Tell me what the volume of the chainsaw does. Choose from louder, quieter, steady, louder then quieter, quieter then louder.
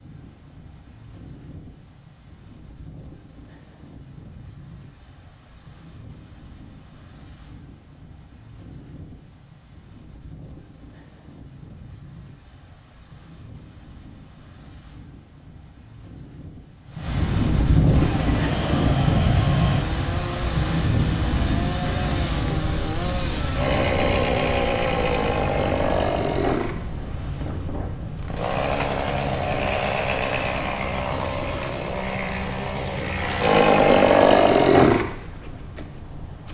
louder.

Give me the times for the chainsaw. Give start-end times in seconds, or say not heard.
17.9-36.4.